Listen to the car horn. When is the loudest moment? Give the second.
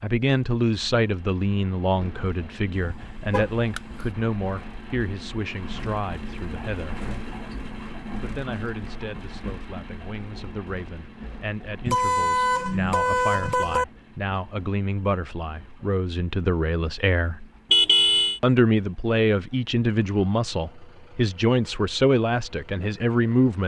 18 s.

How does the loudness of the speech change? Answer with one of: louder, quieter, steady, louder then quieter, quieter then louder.
quieter then louder.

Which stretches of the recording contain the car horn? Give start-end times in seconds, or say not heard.
2.8-4.0, 11.8-13.8, 17.7-18.4.